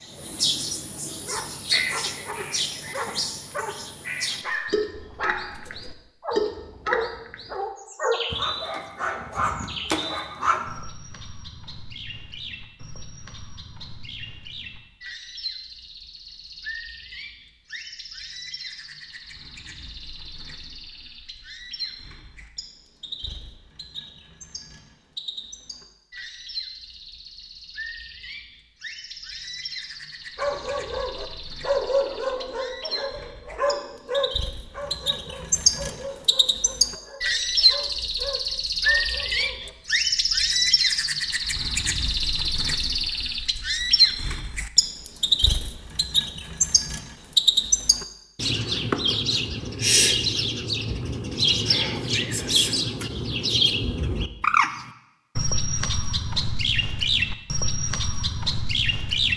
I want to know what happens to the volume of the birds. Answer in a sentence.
The volume of the birds goes down, then up.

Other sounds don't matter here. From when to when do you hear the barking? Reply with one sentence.
The barking can be heard from 1.2 to 3.8 s, from 4.4 to 10.8 s and from 30.4 to 39.8 s.